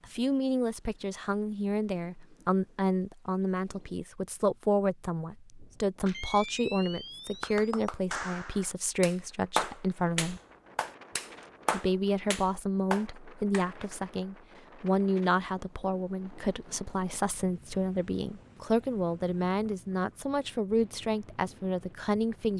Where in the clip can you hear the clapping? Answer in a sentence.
You can hear the clapping from 7.4 to 13.7 s.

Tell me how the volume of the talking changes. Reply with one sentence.
The volume of the talking stays about the same.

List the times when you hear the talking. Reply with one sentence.
The talking can be heard from 0.0 to 10.4 s and from 11.7 to 22.5 s.